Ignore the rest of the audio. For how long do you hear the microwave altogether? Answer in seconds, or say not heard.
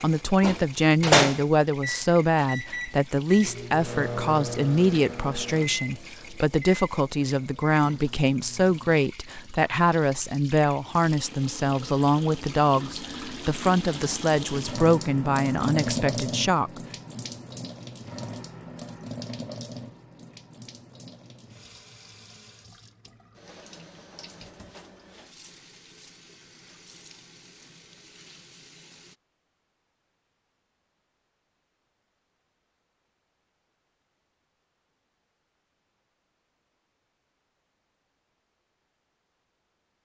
9 s.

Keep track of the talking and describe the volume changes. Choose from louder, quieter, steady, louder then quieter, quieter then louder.
steady.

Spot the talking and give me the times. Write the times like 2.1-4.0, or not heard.
0.0-16.8.